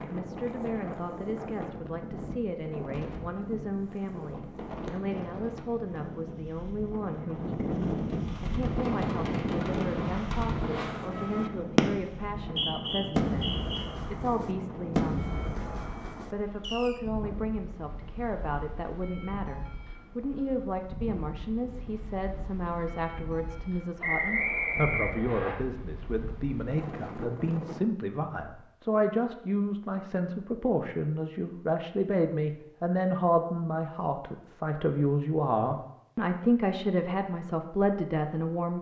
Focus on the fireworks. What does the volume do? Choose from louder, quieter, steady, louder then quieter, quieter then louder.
louder then quieter.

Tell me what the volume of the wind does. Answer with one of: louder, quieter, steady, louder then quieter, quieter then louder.
louder then quieter.